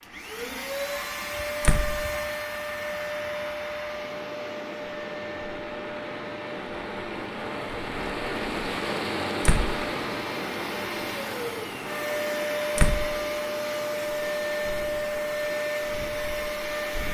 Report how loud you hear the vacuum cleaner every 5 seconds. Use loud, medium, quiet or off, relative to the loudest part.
loud, medium, loud, loud.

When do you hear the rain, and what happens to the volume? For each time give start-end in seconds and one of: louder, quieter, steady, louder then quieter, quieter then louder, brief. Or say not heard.
0.0-17.0 louder then quieter.